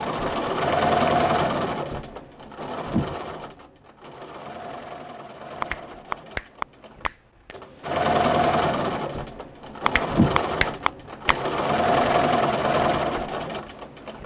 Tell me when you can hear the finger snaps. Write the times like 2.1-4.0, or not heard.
5.6-7.6, 9.8-11.4.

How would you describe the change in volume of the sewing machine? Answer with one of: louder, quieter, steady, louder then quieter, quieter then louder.
quieter then louder.